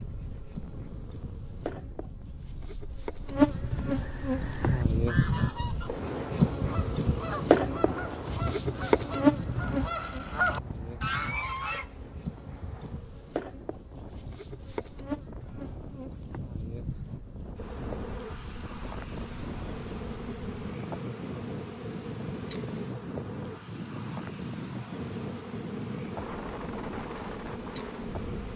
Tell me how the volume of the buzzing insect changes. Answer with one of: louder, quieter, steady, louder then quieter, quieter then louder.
quieter.